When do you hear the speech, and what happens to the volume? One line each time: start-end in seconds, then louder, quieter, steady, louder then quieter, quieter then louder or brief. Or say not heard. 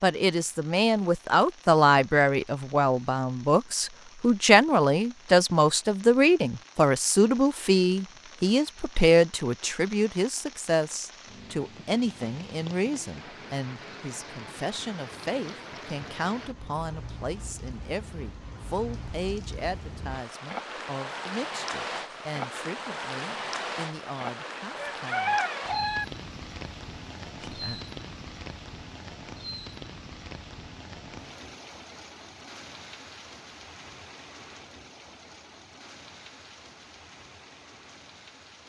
0.0-25.4 quieter
27.4-27.9 brief.